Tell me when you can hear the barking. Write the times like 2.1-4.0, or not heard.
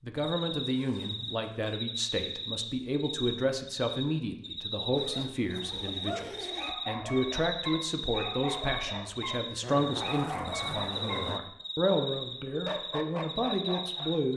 5.8-14.2.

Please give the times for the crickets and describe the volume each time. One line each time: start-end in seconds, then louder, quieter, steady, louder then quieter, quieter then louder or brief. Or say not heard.
0.1-14.3 steady.